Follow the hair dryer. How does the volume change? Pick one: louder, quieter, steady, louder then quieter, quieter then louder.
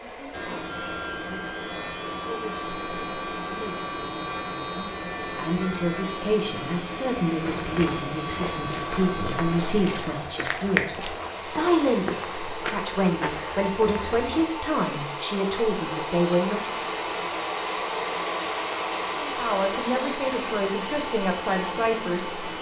louder.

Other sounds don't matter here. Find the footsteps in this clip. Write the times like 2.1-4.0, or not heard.
7.4-14.4.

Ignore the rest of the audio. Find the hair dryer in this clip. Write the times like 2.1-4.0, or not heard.
0.0-22.5.